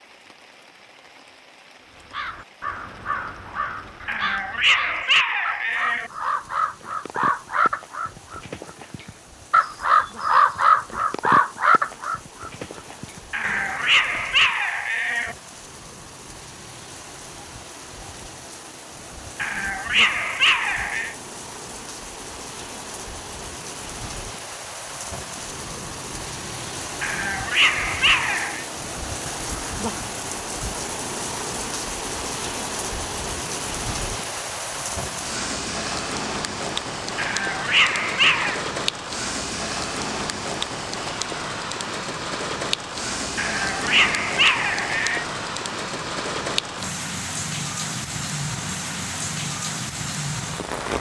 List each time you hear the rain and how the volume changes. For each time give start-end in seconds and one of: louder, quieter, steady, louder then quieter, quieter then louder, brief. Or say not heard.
0.0-50.9 louder.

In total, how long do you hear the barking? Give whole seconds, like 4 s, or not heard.
11 s.